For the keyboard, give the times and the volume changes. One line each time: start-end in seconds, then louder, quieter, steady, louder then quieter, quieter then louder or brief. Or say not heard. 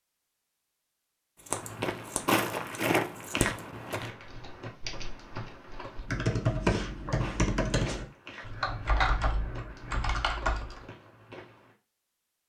4.1-10.8 louder then quieter.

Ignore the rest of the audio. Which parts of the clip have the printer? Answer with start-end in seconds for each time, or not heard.
not heard.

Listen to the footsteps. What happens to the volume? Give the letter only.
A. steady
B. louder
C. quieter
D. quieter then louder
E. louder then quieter
C.